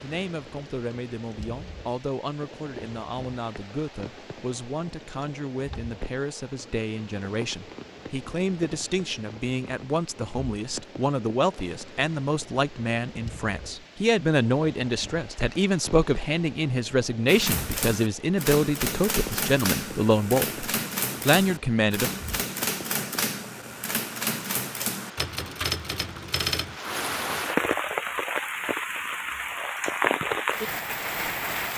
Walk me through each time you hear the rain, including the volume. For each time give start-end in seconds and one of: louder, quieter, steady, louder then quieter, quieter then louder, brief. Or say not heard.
0.0-31.7 louder.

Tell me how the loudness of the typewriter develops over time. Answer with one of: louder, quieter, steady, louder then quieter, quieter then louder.
steady.